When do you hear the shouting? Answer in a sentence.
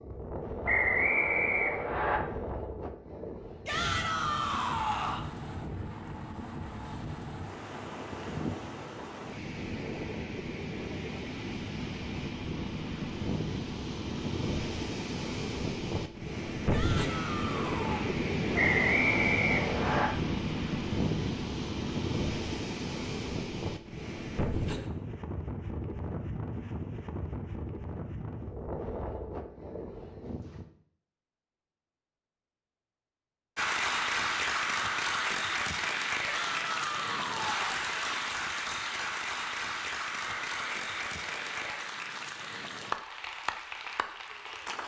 You can hear the shouting from 3.6 to 5.2 s, from 16.7 to 18.1 s and from 36.2 to 37.9 s.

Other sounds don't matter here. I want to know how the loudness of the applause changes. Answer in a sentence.
The volume of the applause goes down.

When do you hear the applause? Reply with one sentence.
The applause can be heard from 33.5 to 44.8 s.